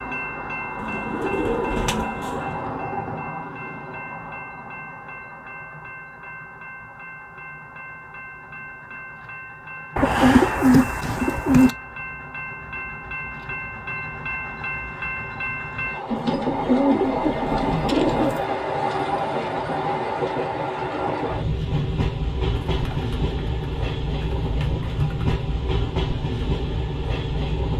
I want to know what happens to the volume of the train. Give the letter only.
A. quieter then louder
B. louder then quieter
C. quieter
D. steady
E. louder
A.